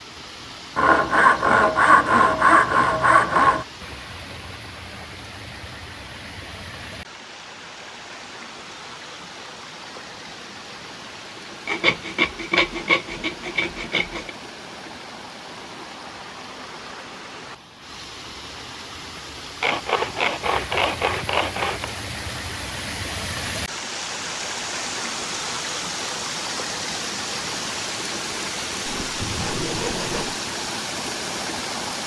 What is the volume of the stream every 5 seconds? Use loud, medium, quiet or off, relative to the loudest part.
medium, medium, medium, medium, loud, loud, loud.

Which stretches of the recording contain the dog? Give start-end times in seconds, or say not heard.
not heard.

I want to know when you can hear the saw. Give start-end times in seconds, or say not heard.
0.8-3.6, 11.7-14.3, 19.6-21.9, 28.9-30.4.